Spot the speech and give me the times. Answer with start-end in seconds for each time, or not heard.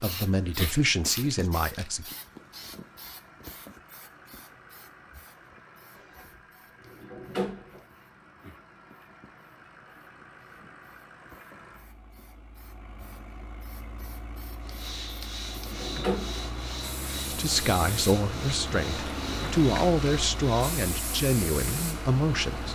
0.0-2.1, 17.3-22.6.